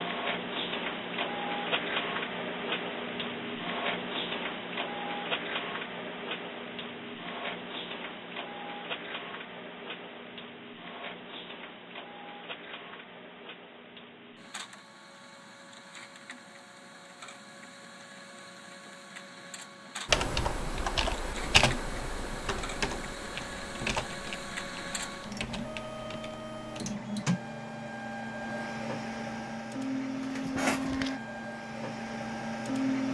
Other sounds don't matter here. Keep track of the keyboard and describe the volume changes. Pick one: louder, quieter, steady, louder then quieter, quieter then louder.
quieter.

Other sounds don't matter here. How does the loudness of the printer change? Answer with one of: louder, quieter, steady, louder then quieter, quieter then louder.
quieter then louder.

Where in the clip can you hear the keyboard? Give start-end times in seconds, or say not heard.
20.1-26.9.